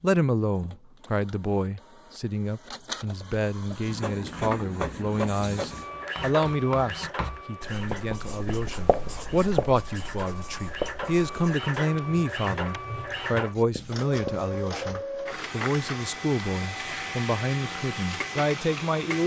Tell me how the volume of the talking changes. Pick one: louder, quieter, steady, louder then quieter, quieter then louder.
steady.